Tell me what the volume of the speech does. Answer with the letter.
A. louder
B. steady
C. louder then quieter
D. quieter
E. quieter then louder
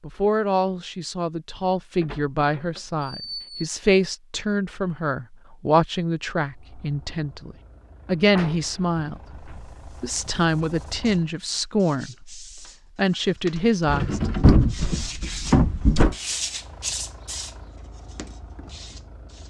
B.